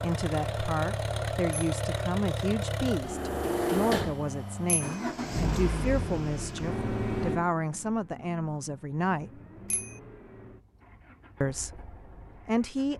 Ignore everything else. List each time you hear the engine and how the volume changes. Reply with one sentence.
You can hear the engine from 0.0 to 12.9 s, getting quieter.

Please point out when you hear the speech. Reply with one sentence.
The speech can be heard from 0.0 to 9.4 s and from 11.4 to 12.9 s.